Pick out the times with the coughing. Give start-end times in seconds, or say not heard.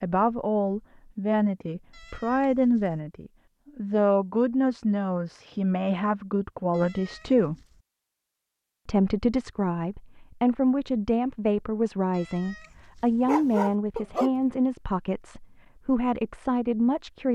not heard.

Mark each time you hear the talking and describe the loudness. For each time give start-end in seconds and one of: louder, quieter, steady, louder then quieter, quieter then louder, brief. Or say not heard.
0.0-7.5 steady
8.8-17.3 steady.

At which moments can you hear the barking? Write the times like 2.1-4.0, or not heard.
13.2-14.3.